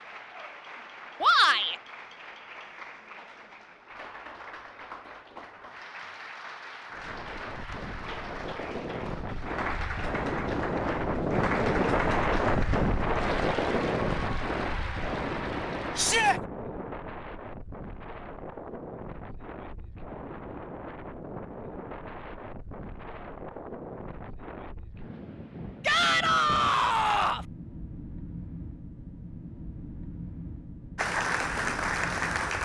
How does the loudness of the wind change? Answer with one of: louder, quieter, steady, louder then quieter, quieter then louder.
quieter.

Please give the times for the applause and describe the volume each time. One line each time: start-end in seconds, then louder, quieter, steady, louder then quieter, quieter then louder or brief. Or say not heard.
0.0-16.4 louder
30.9-32.6 brief.